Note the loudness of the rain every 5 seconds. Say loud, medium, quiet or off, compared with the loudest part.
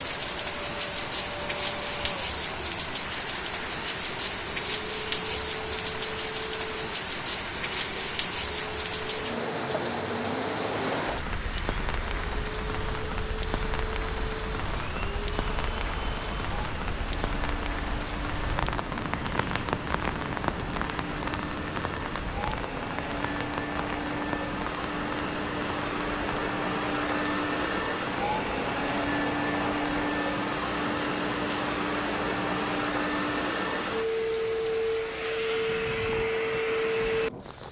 loud, loud, loud, loud, loud, medium, medium, medium.